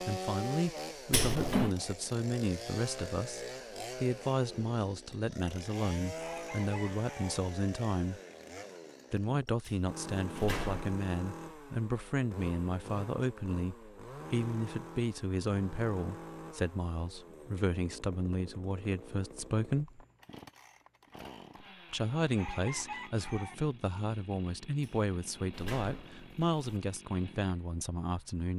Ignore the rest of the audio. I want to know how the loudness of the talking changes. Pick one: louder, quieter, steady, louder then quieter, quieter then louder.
steady.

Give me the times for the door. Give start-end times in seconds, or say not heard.
1.1-1.8, 9.7-11.0, 24.8-26.8.